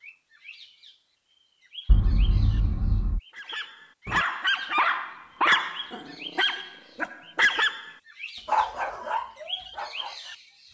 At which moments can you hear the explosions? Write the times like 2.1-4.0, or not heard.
1.9-3.2.